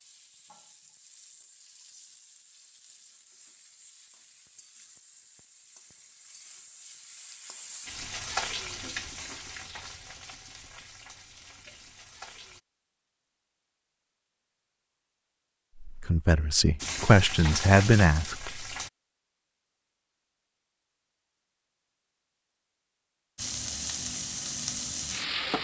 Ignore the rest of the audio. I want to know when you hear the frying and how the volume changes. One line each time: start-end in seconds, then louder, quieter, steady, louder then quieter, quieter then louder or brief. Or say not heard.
0.0-12.6 louder then quieter
16.8-18.9 brief
23.4-25.5 brief.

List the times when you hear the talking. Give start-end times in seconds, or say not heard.
15.8-18.6.